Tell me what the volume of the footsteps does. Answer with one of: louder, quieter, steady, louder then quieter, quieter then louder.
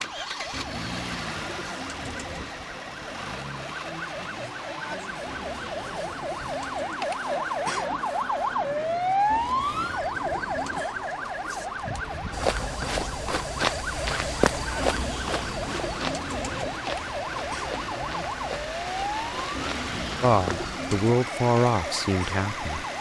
quieter.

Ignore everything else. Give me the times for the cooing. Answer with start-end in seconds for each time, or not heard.
0.5-2.5, 5.2-7.0, 9.3-10.9, 14.8-16.8, 19.6-21.1.